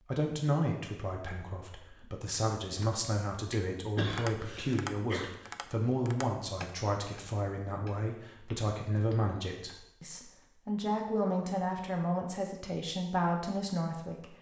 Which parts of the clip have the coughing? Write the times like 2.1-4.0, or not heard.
4.0-5.2.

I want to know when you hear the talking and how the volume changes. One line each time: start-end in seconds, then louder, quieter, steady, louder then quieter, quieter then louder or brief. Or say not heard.
0.1-14.3 steady.